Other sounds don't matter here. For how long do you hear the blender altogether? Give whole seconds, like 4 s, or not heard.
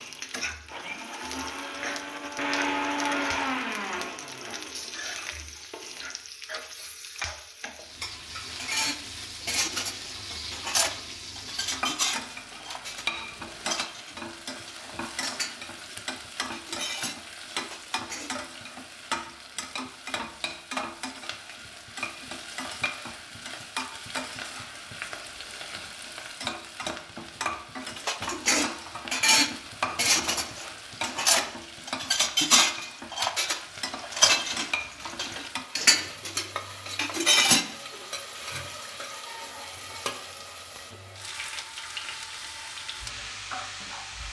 6 s.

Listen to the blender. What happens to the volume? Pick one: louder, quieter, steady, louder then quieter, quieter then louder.
louder then quieter.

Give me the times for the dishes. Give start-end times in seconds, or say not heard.
8.6-18.4, 27.9-37.6.